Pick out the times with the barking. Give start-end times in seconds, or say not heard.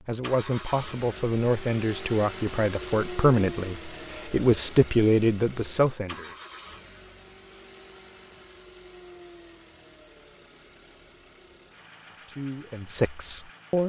not heard.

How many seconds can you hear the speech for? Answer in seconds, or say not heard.
8 s.